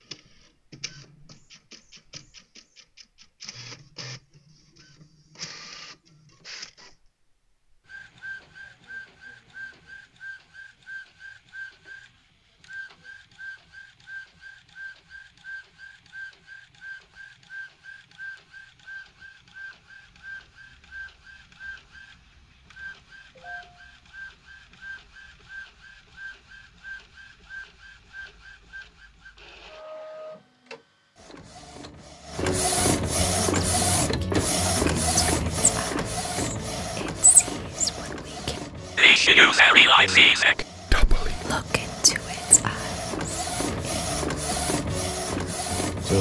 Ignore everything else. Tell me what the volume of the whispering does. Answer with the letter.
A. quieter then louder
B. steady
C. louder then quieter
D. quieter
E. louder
C.